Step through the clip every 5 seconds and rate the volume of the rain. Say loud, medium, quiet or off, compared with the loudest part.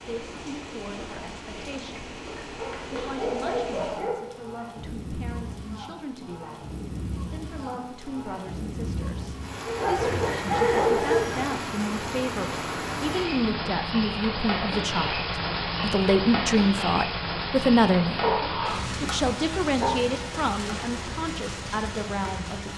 medium, medium, loud, loud, medium.